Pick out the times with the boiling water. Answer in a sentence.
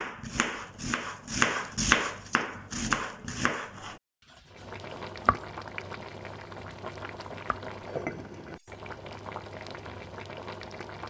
The boiling water can be heard from 4.5 to 11.0 s.